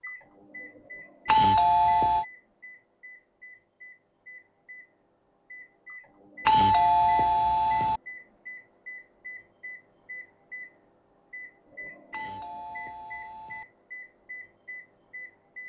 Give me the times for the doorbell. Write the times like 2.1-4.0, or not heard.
1.2-2.2, 6.5-8.0, 12.1-13.7.